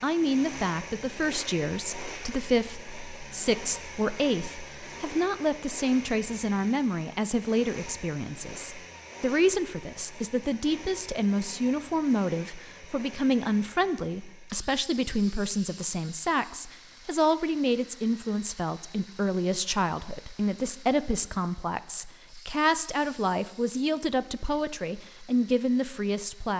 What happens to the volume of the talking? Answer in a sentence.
The volume of the talking stays about the same.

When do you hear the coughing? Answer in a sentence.
The coughing can't be heard in this clip.